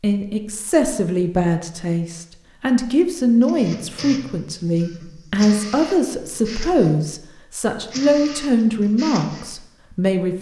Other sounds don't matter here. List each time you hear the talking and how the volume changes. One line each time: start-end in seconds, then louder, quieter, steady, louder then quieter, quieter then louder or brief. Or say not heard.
0.0-10.3 steady.